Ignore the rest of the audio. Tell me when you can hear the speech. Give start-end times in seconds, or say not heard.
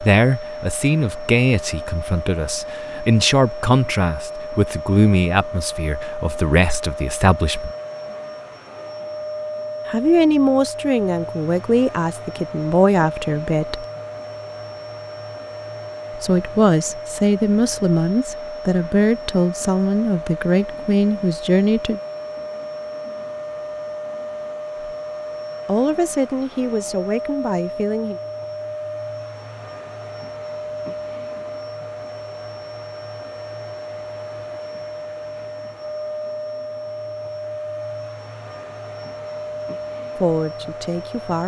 0.0-7.7, 9.8-13.8, 16.1-22.0, 25.6-28.2, 40.1-41.4.